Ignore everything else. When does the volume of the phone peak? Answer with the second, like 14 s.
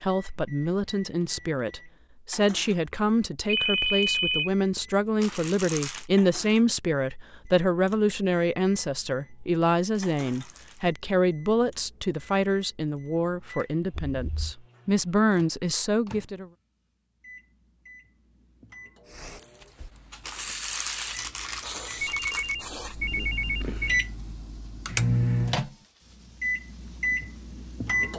4 s.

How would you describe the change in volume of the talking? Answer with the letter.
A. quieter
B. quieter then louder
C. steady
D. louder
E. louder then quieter
C.